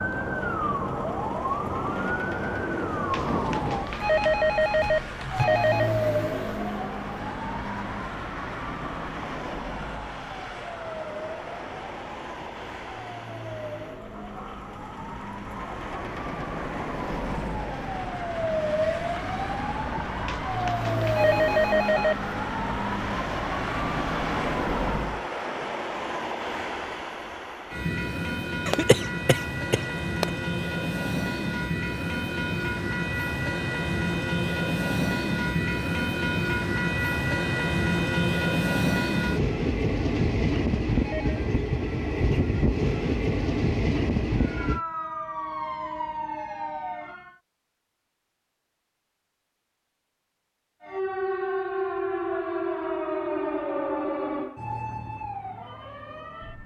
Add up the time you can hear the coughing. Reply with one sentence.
The coughing can be heard for 2 seconds in total.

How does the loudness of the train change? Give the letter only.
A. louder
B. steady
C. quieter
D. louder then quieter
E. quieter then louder
A.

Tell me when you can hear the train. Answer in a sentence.
The train can be heard from 0.0 to 44.8 s.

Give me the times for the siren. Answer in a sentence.
You can hear the siren from 0.0 to 25.2 s, from 44.4 to 47.4 s and from 50.8 to 56.6 s.